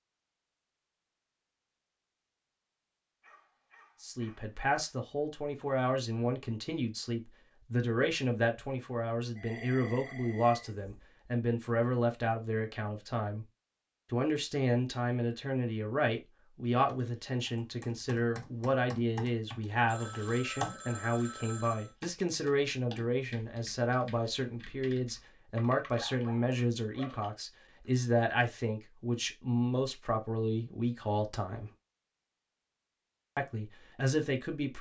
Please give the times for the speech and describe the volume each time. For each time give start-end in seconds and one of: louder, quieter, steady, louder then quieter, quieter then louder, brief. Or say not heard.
4.0-13.4 steady
14.1-31.7 steady
33.4-34.7 brief.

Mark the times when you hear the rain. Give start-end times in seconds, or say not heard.
not heard.